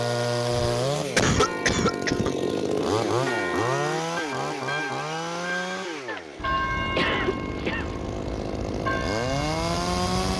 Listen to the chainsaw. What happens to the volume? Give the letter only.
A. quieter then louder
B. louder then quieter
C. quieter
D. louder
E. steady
A.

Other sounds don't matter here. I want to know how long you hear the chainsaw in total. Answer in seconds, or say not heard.
10 s.